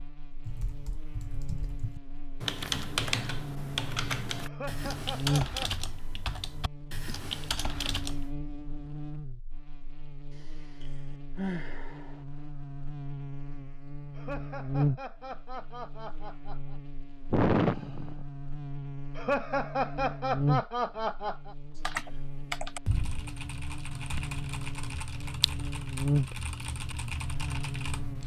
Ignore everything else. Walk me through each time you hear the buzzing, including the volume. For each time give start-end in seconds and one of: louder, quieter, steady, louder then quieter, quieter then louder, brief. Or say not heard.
0.0-28.2 quieter then louder.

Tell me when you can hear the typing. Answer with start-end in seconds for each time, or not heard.
0.5-8.3, 21.8-28.2.